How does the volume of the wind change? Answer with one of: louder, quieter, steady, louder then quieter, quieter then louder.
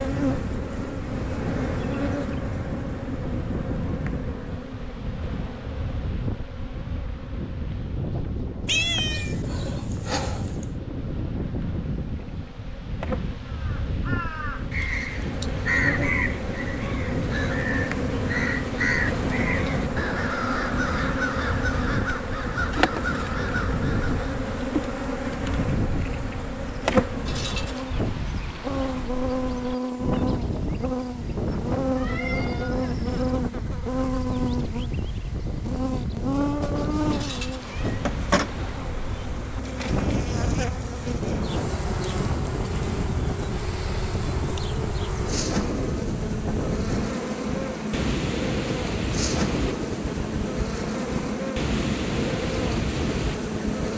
steady.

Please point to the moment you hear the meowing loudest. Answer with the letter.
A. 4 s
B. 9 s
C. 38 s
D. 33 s
B.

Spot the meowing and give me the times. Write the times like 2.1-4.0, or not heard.
8.7-10.8, 31.9-32.8, 36.6-38.1.